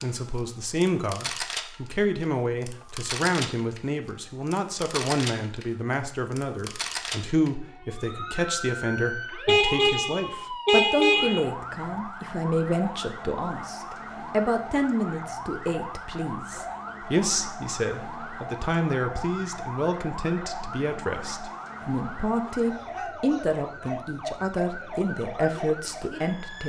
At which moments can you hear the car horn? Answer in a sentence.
You can hear the car horn from 9.4 to 11.4 s.